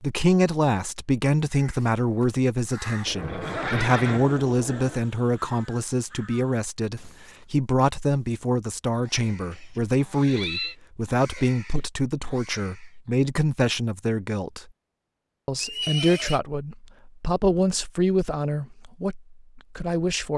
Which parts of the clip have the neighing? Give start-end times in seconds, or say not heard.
3.0-5.0, 9.5-10.8, 15.6-16.4.